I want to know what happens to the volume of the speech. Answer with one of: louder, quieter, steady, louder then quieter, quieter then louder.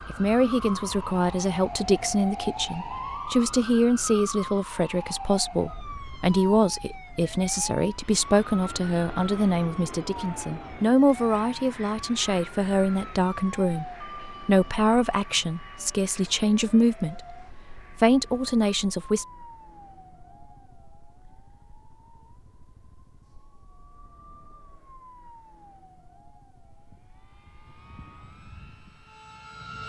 steady.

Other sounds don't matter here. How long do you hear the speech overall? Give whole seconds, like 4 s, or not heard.
19 s.